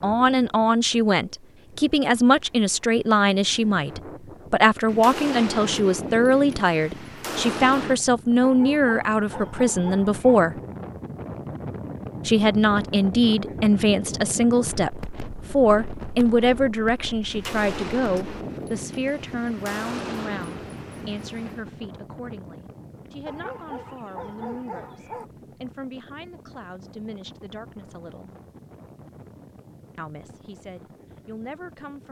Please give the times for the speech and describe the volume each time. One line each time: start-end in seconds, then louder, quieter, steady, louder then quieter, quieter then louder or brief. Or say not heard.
0.0-10.6 steady
12.2-28.3 quieter
29.9-32.0 brief.